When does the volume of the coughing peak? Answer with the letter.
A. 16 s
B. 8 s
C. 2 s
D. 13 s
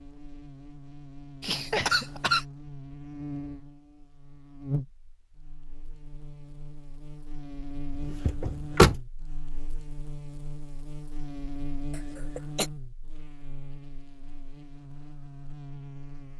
C.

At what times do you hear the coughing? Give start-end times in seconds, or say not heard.
1.4-2.5, 11.9-12.7.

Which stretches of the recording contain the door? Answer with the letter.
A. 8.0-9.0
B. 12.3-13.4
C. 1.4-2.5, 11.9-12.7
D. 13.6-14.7
A.